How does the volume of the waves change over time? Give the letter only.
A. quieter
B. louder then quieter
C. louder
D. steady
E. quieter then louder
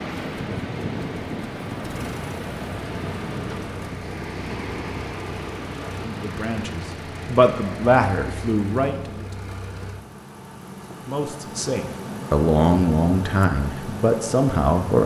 A.